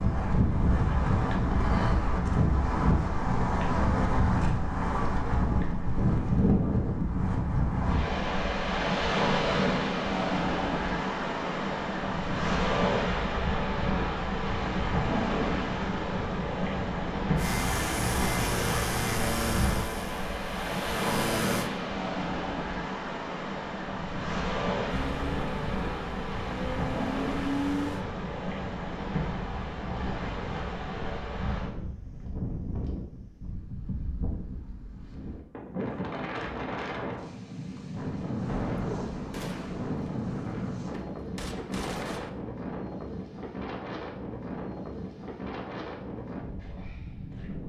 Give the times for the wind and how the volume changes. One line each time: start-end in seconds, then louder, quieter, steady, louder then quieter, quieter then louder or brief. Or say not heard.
0.0-47.6 quieter.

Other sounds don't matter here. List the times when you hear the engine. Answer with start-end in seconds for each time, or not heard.
17.4-21.7, 24.9-28.1.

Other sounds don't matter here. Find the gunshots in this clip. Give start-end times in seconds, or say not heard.
38.5-42.3.